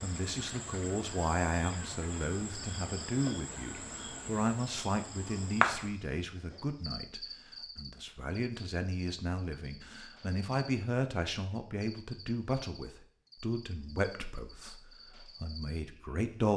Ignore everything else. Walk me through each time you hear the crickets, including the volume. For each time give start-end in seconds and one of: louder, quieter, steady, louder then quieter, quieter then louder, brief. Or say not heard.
0.0-16.3 louder then quieter.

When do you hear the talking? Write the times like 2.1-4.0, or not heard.
0.0-16.5.